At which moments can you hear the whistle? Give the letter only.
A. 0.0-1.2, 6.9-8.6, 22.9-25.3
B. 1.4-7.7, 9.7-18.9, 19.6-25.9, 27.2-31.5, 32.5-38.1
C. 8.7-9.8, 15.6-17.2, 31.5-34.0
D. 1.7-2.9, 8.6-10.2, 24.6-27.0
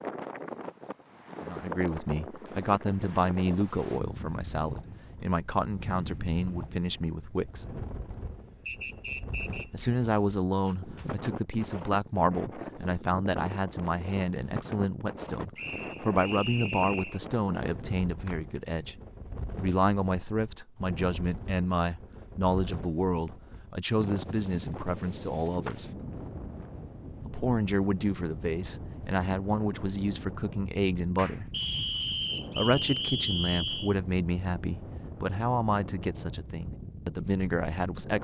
C.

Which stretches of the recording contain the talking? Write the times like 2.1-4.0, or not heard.
1.4-7.7, 9.7-18.9, 19.6-25.9, 27.2-31.5, 32.5-38.1.